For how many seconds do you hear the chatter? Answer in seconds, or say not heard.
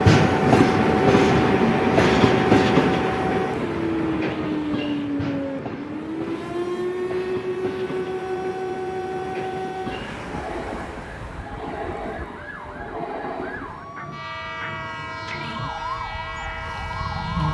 not heard.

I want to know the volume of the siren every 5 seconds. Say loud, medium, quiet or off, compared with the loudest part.
loud, loud, medium, loud.